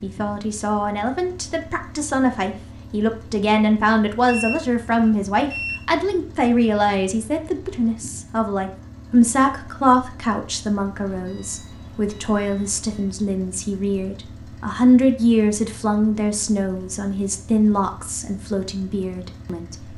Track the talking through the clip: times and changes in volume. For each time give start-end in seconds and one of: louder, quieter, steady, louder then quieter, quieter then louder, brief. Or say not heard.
0.0-19.8 steady.